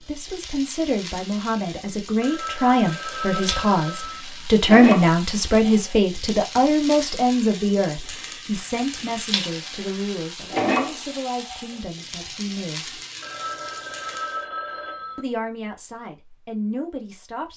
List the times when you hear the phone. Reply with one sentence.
You can hear the phone from 2.2 to 4.2 s and from 13.2 to 15.2 s.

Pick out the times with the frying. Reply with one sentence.
The frying can be heard from 0.0 to 14.4 s.